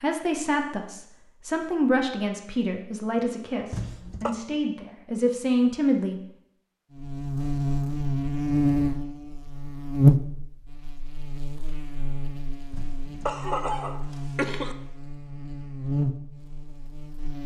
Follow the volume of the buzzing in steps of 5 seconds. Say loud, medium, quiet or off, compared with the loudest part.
off, loud, loud, medium.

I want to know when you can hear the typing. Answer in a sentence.
The typing can't be heard in this clip.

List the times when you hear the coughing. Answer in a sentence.
The coughing can be heard from 3.7 to 4.3 s and from 12.7 to 14.8 s.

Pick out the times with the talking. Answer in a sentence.
The talking can be heard from 0.0 to 6.2 s.